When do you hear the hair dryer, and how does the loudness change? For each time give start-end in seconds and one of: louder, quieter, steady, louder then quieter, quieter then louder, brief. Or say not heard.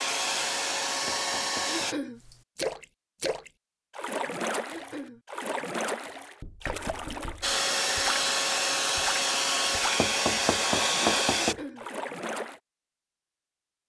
0.0-1.9 brief
7.4-11.6 steady.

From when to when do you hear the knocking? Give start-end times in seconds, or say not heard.
1.1-1.9, 6.4-7.5, 10.0-11.6.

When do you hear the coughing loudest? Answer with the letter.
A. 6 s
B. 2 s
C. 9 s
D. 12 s
B.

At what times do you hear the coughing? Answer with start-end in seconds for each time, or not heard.
1.6-2.2, 4.7-5.2, 11.3-11.8.